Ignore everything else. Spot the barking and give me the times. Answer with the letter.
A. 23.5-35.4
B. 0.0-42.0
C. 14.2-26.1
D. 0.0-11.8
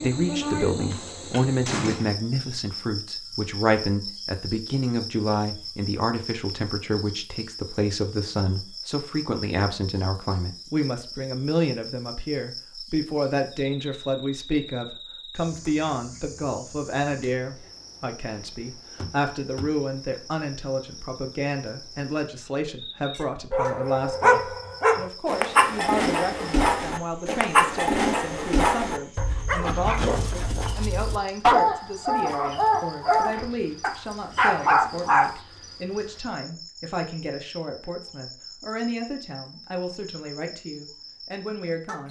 A.